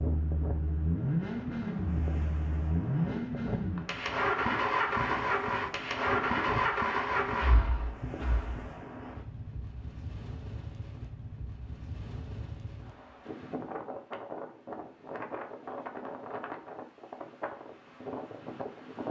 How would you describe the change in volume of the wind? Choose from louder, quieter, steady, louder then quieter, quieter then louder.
steady.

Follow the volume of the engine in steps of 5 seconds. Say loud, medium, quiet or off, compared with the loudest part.
loud, loud, off, off.